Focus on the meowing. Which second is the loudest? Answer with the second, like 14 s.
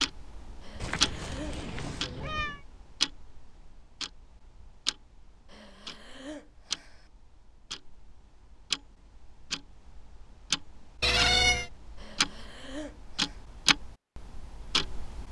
11 s.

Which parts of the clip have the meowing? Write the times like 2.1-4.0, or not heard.
0.8-2.6, 11.0-11.7.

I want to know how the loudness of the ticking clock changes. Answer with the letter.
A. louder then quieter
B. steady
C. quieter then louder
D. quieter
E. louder
C.